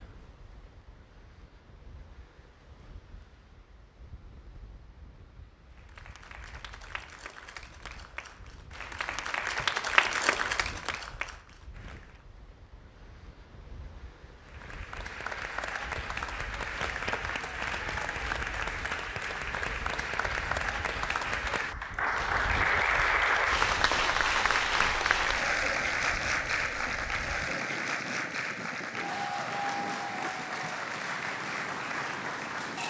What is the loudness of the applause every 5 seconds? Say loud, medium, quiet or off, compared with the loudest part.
off, medium, medium, medium, loud, loud, medium.